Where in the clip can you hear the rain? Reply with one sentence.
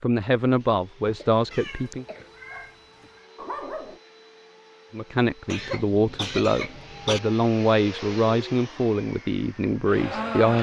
The rain can't be heard in this clip.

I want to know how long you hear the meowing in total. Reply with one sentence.
You can hear the meowing for 2 seconds altogether.